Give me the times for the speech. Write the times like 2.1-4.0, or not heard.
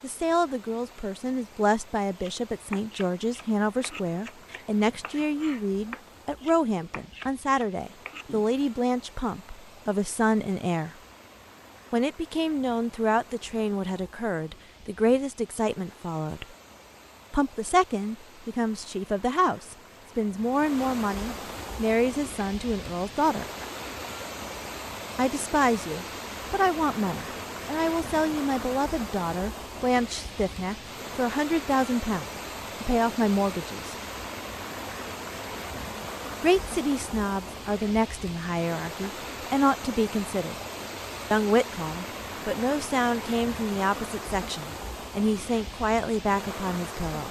0.0-10.9, 11.9-16.4, 17.3-23.4, 25.1-34.0, 36.4-40.5, 41.3-47.2.